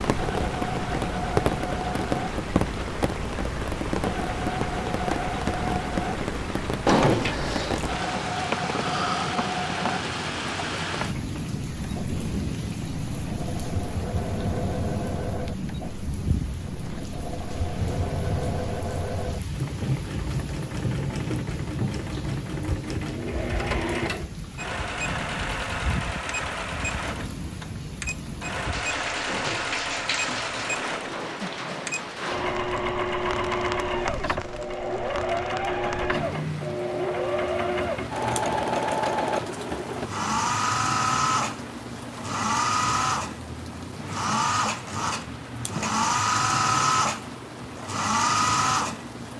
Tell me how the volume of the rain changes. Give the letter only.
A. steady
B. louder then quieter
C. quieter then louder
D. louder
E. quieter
E.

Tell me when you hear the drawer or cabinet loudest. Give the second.
7 s.